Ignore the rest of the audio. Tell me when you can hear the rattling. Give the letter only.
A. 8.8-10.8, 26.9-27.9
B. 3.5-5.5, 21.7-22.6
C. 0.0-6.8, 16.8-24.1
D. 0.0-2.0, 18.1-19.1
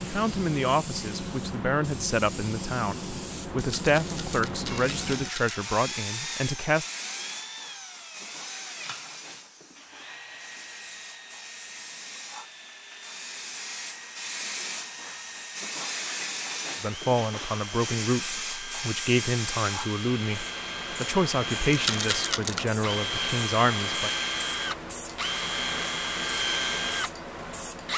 B.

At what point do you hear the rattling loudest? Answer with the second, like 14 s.
22 s.